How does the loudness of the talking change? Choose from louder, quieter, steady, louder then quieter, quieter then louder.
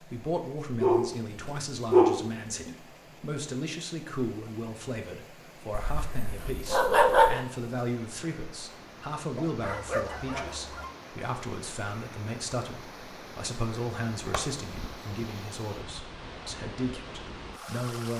steady.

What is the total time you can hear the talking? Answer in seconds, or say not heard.
18 s.